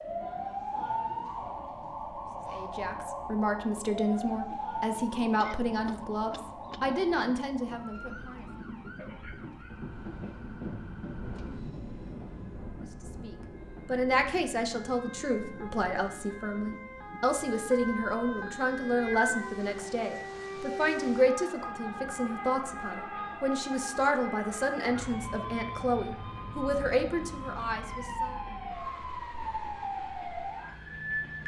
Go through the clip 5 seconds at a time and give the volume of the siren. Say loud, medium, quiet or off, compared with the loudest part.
loud, medium, quiet, loud, loud, loud, loud.